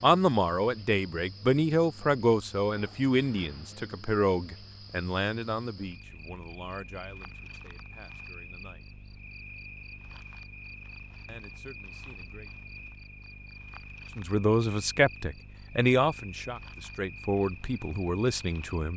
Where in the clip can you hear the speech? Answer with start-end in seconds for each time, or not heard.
0.0-8.8, 11.2-12.5, 14.2-18.9.